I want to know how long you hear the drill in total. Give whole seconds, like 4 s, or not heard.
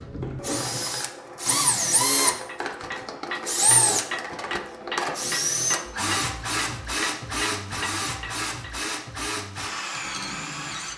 11 s.